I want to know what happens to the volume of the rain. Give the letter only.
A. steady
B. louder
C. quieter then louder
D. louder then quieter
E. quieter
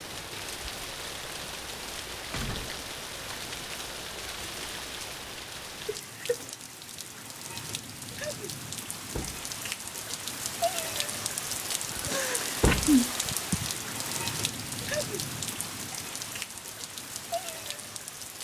D.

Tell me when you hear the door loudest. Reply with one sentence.
The volume of the door peaks at 13 seconds.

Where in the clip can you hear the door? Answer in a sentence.
You can hear the door from 2.3 to 3.6 s, from 9.1 to 9.5 s and from 12.6 to 13.0 s.